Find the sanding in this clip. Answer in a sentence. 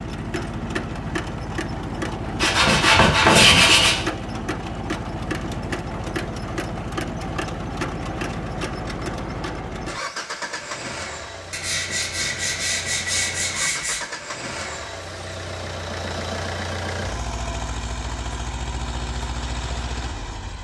The sanding can be heard from 2.4 to 4.0 s and from 11.5 to 14.1 s.